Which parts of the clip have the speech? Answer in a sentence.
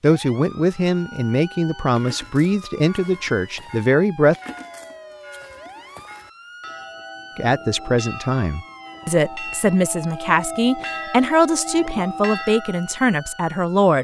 The speech can be heard from 0.0 to 4.3 s and from 7.3 to 13.9 s.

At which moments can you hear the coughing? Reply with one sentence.
You can't hear the coughing here.